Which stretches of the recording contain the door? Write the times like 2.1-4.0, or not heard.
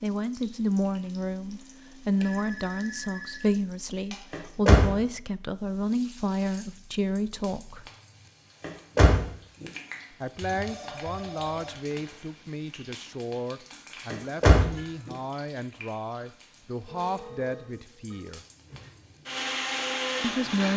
4.3-4.9, 8.6-9.7, 14.1-15.2.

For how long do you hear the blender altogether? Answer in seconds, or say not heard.
2 s.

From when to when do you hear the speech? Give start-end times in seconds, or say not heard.
0.0-7.8, 10.1-18.4, 20.2-20.7.